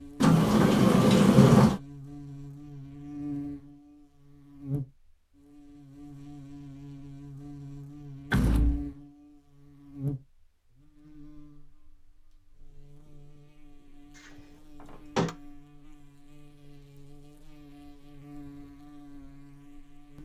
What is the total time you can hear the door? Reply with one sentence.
You can hear the door for 3 seconds altogether.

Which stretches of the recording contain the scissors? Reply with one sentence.
The scissors can't be heard in this clip.